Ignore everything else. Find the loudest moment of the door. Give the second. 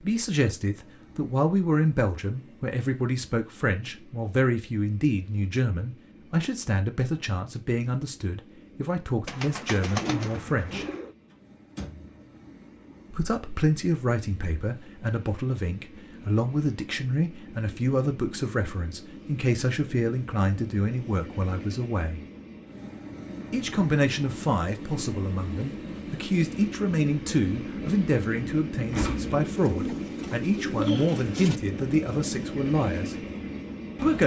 29 s.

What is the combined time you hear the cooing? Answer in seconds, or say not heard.
4 s.